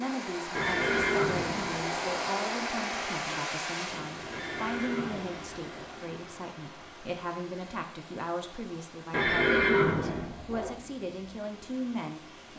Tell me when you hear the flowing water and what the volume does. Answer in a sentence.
The flowing water can be heard from 0.0 to 12.5 s, getting quieter.